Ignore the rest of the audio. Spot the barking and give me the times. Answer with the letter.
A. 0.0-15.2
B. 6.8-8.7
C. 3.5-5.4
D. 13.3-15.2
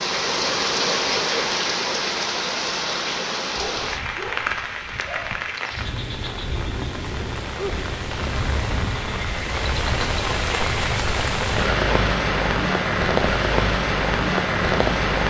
C.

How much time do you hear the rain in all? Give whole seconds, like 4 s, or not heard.
15 s.